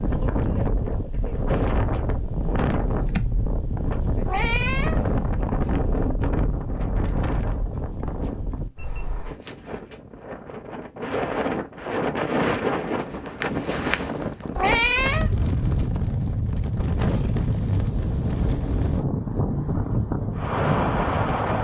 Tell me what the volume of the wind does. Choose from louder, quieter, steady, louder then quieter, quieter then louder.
steady.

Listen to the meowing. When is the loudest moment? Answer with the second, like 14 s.
15 s.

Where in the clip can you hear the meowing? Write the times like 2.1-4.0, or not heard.
4.2-5.2, 14.6-15.8.